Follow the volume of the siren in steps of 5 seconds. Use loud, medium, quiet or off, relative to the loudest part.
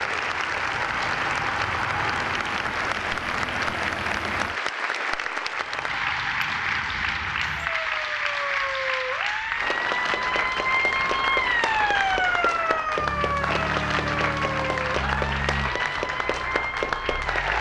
medium, medium, loud, medium.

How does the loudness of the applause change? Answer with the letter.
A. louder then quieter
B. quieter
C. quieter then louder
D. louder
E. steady
E.